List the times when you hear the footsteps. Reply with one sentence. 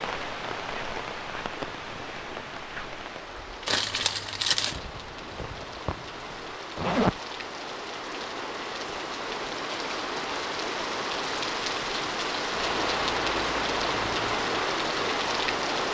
You can't hear the footsteps here.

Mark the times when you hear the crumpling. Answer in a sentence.
The crumpling can be heard from 3.6 to 4.8 s.